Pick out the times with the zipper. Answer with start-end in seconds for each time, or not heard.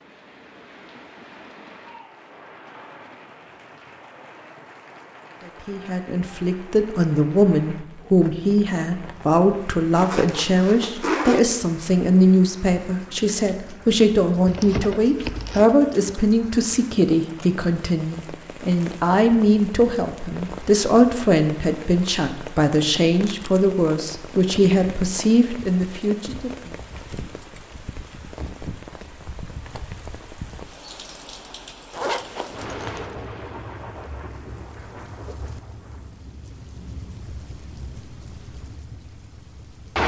9.9-11.4, 14.4-15.7, 31.9-33.1.